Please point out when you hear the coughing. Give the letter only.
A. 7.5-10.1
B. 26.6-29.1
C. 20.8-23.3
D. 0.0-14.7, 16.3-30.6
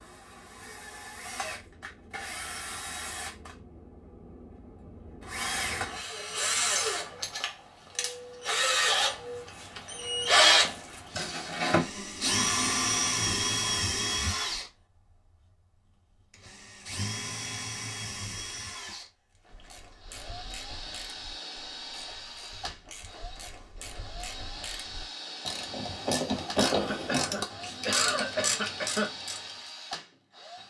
B.